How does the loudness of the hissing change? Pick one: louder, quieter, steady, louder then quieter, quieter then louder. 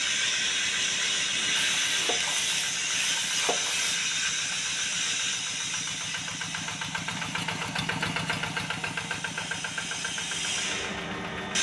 quieter then louder.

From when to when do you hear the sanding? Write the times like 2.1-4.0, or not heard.
1.7-4.0.